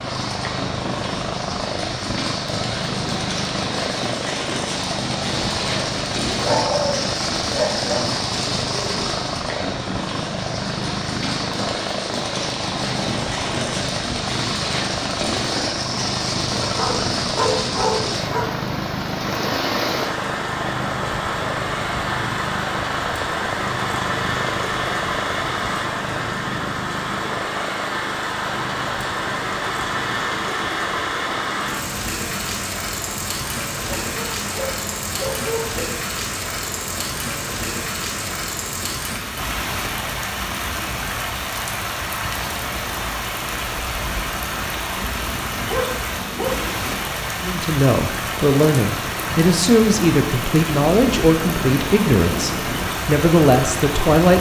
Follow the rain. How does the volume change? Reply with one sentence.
The loudness of the rain stays about the same.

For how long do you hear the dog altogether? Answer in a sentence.
The dog can be heard for 7 seconds in total.